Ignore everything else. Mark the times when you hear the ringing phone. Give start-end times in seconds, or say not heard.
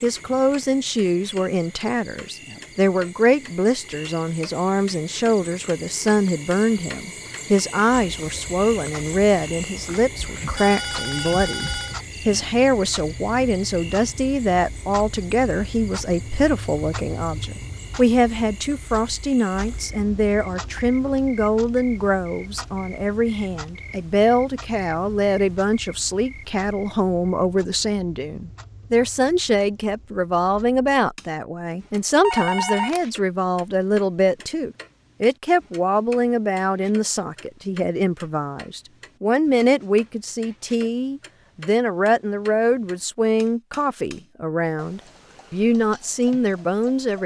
10.2-11.9, 32.2-33.0.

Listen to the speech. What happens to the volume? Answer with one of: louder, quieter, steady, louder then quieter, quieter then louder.
steady.